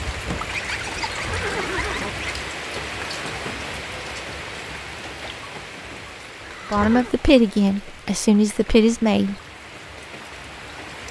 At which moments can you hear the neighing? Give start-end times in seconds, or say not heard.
1.1-2.1, 6.5-7.2.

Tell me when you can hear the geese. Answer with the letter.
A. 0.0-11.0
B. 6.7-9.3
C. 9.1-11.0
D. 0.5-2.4
D.